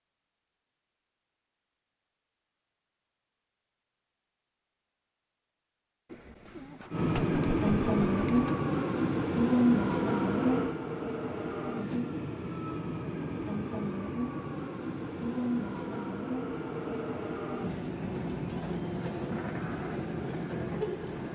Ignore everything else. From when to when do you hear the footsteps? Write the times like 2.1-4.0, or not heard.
not heard.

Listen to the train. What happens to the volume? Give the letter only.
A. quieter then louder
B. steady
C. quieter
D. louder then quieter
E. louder
C.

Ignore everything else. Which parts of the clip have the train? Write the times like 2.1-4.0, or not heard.
6.9-21.3.